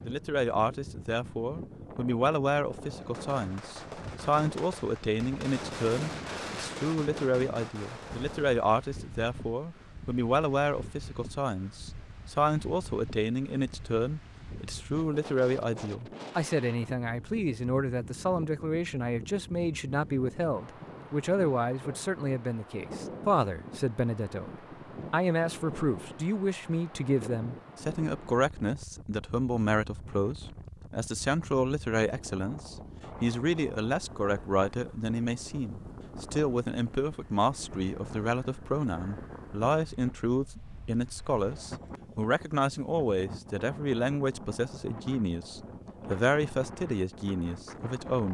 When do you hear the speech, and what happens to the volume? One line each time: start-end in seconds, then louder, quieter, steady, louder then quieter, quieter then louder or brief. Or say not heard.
0.0-24.5 steady
25.1-48.2 steady.